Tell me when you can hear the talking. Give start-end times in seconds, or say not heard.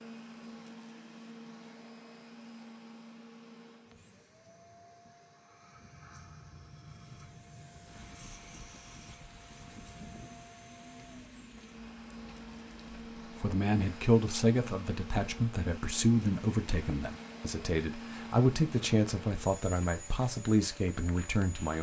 13.3-21.7.